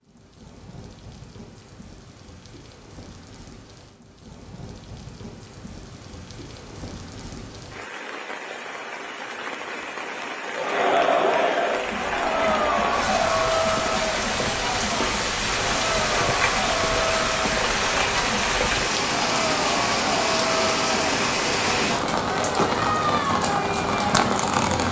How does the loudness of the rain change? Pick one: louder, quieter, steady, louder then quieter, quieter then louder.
louder.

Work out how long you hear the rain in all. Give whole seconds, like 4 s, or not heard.
25 s.